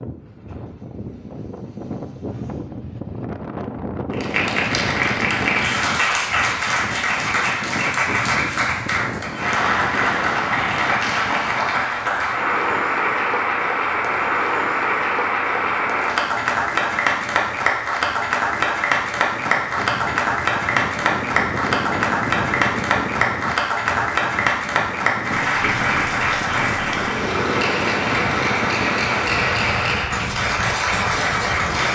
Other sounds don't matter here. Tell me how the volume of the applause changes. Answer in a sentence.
The loudness of the applause stays about the same.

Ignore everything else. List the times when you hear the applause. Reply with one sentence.
You can hear the applause from 4.1 to 31.9 s.